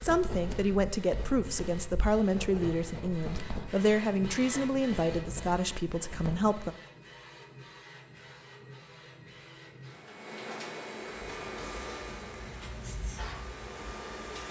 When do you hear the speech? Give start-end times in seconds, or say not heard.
0.0-6.8.